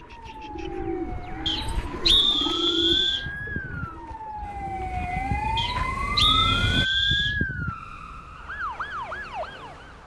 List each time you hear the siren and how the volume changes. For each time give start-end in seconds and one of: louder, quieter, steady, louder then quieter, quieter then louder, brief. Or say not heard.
0.0-10.0 louder then quieter.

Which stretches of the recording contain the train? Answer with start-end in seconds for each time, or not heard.
4.4-6.8.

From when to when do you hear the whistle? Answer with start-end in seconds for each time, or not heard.
1.4-3.2, 5.5-7.3.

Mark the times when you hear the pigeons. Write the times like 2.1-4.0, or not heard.
0.0-5.2.